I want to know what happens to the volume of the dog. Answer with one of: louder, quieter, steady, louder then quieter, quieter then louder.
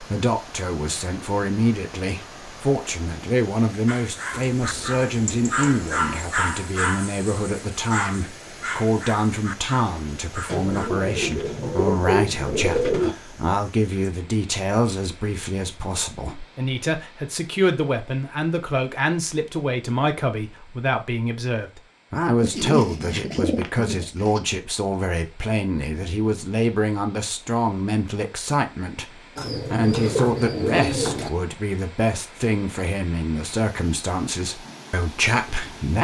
louder then quieter.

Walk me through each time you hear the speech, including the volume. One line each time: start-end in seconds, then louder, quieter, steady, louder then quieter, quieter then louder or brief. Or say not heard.
0.0-35.9 steady.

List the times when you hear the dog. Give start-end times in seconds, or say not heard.
3.9-10.9.